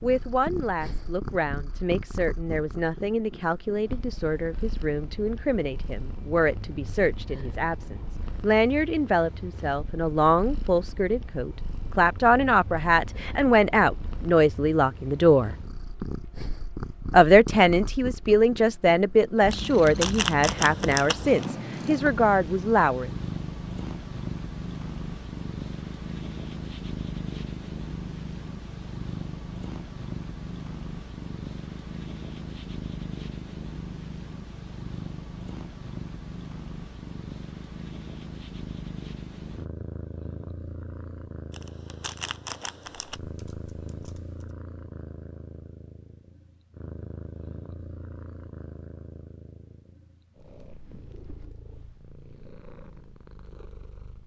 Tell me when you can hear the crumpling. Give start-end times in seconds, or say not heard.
19.5-21.4, 41.5-43.2.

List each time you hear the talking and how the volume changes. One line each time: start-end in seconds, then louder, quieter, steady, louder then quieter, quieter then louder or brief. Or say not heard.
0.0-15.6 louder
17.1-23.1 steady.